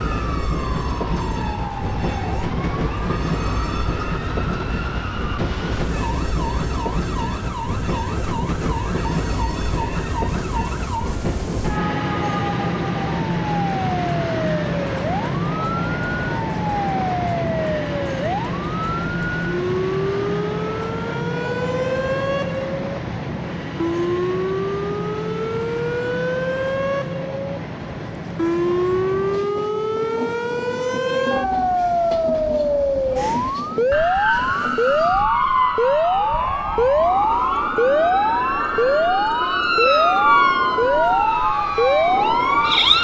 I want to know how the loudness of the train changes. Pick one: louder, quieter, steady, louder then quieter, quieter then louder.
quieter.